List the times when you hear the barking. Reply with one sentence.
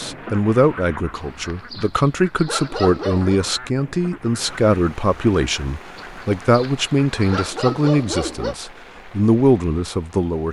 The barking can be heard from 1.1 to 3.4 s and from 6.0 to 8.6 s.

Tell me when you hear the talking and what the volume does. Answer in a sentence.
You can hear the talking from 0.0 to 10.4 s, at a steady volume.